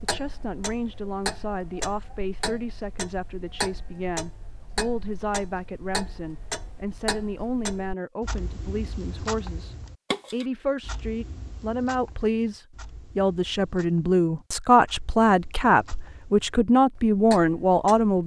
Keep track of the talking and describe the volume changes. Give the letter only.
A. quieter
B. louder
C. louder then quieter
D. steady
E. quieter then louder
B.